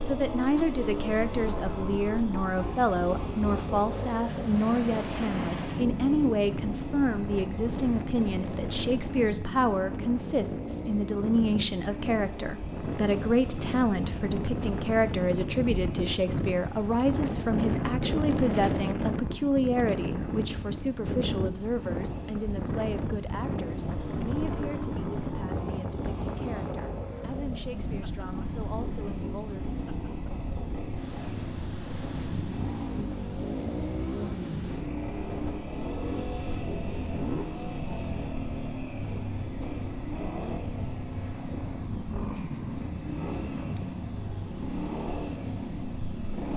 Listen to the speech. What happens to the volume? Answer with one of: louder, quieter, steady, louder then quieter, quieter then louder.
quieter.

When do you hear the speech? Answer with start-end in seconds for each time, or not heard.
0.0-29.6.